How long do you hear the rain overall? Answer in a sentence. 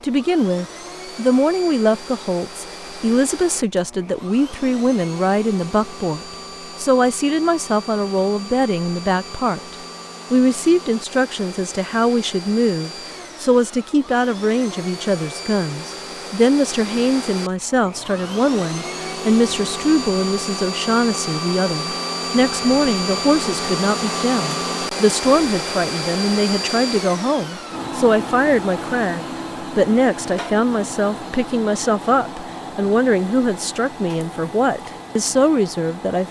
The rain can't be heard in this clip.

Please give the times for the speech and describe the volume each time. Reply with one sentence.
The speech can be heard from 0.0 to 36.2 s, at a steady volume.